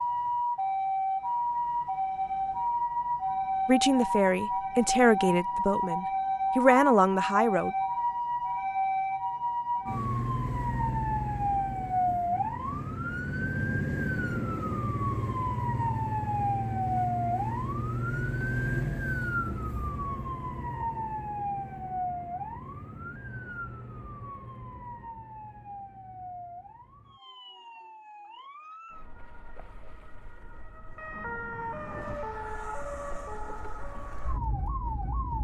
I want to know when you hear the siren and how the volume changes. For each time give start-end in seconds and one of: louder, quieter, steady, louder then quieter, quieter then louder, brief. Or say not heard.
0.0-35.3 quieter.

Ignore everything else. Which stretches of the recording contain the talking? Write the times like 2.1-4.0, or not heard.
3.6-7.7.